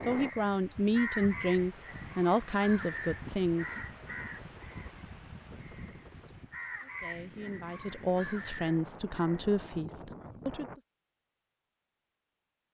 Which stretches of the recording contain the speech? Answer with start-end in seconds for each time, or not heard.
0.0-3.8, 6.8-10.8.